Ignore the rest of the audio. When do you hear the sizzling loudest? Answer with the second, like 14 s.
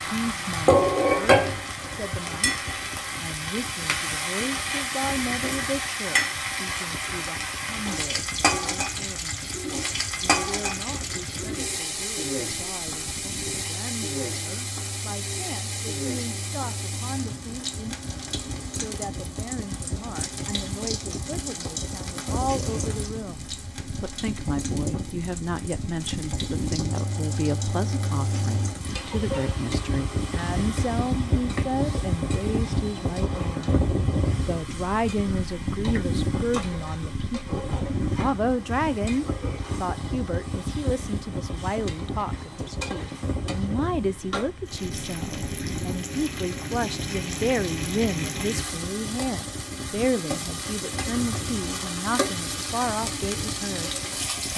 1 s.